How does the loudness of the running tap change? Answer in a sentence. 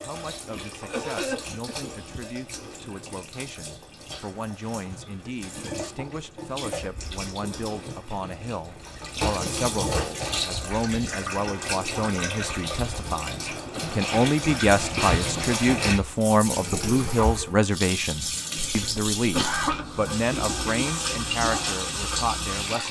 The loudness of the running tap goes up.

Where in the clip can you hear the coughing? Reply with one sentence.
The coughing can be heard from 0.8 to 1.9 s and from 18.6 to 19.9 s.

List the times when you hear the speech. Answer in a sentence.
The speech can be heard from 0.0 to 22.8 s.